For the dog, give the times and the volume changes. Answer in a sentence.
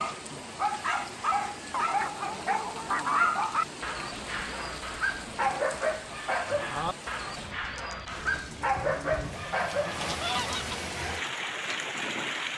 You can hear the dog from 0.0 to 10.2 s, at a steady volume.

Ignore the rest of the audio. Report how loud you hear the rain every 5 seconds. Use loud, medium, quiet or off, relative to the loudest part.
medium, medium, loud.